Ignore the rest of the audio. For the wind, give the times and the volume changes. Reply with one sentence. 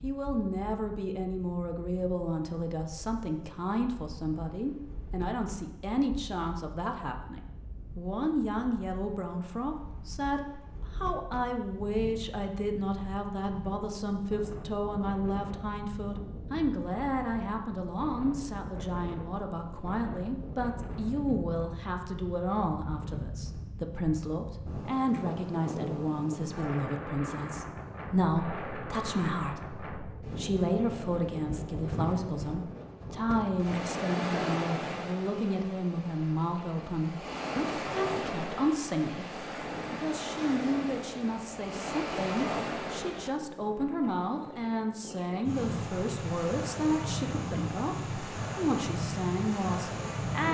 You can hear the wind from 0.0 to 50.4 s, getting louder.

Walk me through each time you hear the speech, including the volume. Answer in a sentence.
You can hear the speech from 0.0 to 50.4 s, at a steady volume.